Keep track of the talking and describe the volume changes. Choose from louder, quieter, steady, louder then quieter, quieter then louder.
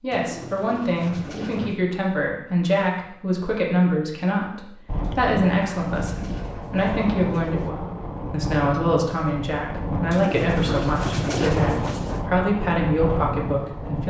steady.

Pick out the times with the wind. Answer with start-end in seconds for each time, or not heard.
4.8-14.0.